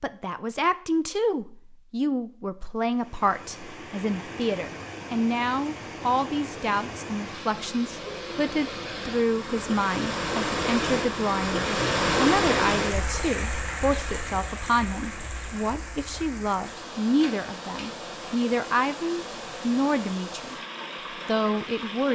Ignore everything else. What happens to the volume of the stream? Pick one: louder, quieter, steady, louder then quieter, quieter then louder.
louder then quieter.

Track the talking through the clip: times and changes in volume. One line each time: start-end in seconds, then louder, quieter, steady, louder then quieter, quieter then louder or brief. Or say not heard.
0.0-20.6 steady
21.2-22.1 brief.